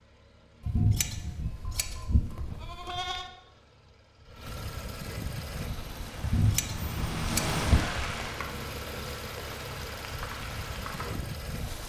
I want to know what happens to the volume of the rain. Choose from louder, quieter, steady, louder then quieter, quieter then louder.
louder then quieter.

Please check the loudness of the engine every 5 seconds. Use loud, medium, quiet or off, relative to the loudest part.
medium, loud, loud.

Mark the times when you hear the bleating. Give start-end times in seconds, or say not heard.
0.6-3.3, 6.2-8.2.